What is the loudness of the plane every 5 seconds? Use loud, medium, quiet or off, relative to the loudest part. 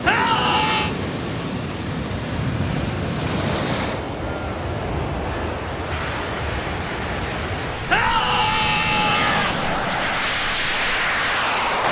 medium, medium, loud.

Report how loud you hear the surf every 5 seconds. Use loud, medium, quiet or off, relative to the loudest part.
loud, loud, quiet.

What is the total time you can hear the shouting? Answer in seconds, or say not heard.
3 s.